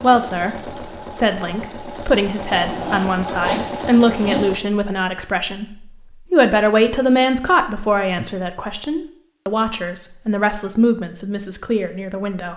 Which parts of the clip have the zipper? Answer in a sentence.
You can hear the zipper from 2.5 to 4.5 s.